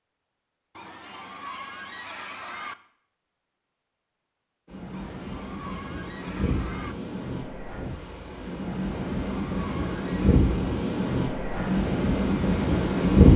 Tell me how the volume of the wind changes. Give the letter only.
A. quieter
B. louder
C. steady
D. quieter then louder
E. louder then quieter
B.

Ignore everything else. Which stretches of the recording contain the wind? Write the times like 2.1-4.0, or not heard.
4.7-13.3.